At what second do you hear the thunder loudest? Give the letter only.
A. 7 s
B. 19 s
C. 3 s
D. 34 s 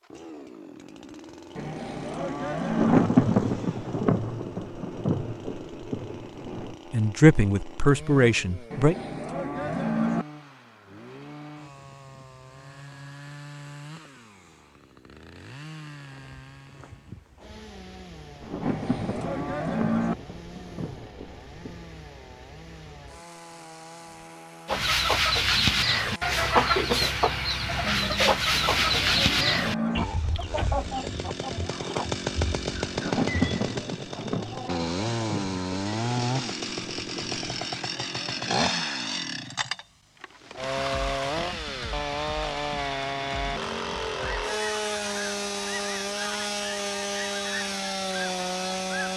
C.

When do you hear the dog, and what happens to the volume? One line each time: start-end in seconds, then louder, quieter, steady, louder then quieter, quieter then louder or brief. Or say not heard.
not heard.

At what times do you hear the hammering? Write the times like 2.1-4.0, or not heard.
not heard.